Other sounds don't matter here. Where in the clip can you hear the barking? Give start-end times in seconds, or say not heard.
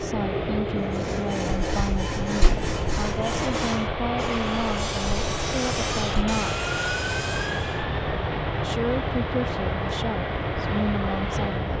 not heard.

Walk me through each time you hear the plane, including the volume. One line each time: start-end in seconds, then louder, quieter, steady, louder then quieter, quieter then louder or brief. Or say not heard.
0.0-11.7 steady.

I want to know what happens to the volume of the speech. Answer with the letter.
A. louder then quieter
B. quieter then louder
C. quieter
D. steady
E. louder
D.